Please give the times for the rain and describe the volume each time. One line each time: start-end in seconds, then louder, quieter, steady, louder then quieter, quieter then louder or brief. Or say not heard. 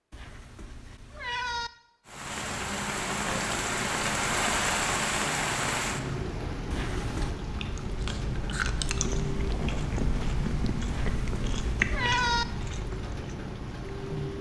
2.0-14.3 quieter.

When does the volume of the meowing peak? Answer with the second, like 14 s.
12 s.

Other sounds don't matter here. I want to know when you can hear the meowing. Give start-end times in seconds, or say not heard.
0.1-1.7, 6.7-7.4, 10.8-12.4.